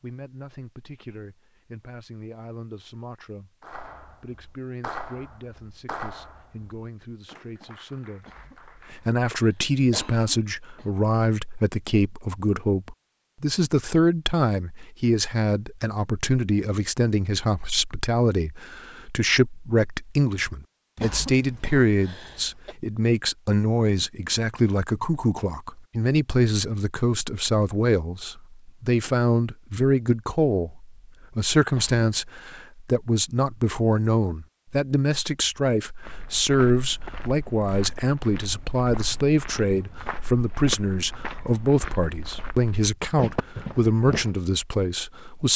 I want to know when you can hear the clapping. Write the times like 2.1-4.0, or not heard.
3.6-9.1.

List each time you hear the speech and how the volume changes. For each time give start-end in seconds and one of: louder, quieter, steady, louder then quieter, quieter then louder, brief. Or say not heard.
0.0-45.5 louder.